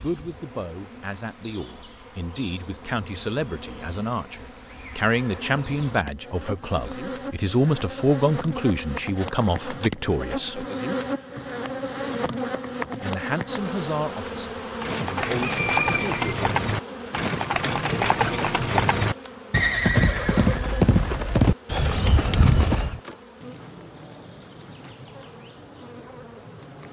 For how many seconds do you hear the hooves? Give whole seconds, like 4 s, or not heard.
8 s.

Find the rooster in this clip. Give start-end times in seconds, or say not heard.
15.2-16.4.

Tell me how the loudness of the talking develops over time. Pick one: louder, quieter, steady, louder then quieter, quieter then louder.
louder then quieter.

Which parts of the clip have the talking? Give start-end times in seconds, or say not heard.
0.0-10.7, 13.0-16.4.